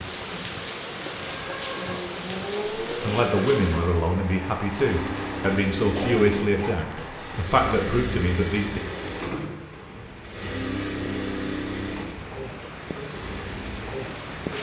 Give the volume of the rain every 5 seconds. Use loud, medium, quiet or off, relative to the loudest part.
loud, medium, loud.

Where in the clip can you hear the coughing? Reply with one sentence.
The coughing can be heard from 6.0 to 6.8 s.